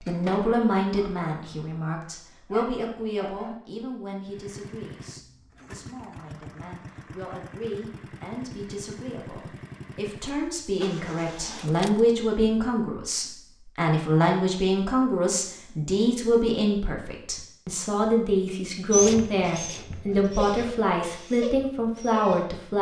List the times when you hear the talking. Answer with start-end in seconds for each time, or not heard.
0.1-22.7.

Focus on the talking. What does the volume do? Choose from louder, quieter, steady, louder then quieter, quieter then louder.
quieter then louder.